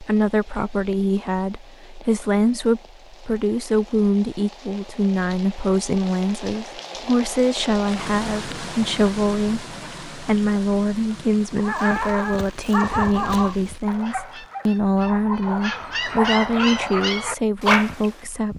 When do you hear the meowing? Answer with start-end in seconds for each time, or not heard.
not heard.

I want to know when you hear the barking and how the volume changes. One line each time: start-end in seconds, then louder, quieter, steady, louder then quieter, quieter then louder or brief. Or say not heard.
11.6-18.5 quieter then louder.